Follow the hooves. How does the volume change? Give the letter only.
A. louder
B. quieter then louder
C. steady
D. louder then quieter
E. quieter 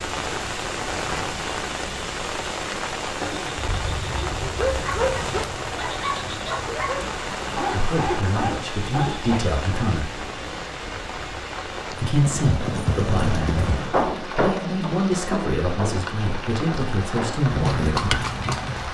B.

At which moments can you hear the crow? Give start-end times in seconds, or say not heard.
not heard.